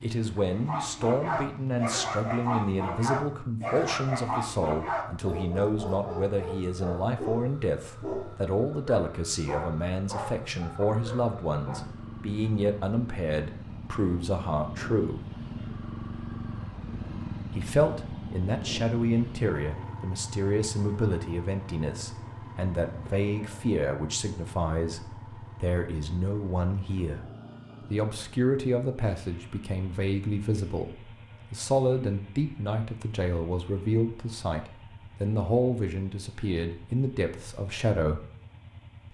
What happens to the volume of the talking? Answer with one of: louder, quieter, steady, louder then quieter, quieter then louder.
steady.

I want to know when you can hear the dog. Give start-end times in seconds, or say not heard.
0.5-11.9.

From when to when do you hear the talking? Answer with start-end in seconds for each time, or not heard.
0.0-15.2, 17.5-27.2, 27.9-38.2.